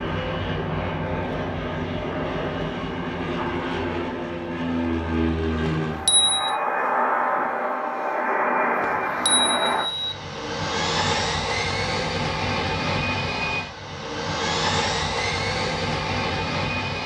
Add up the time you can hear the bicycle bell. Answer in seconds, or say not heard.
2 s.